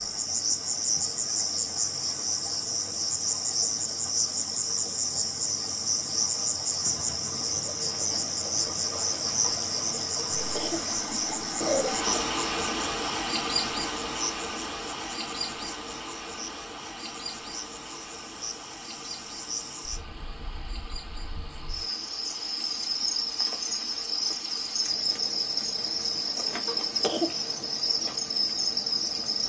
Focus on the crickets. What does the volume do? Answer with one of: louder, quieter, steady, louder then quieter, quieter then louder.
quieter then louder.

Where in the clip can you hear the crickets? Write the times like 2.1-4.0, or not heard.
0.0-29.4.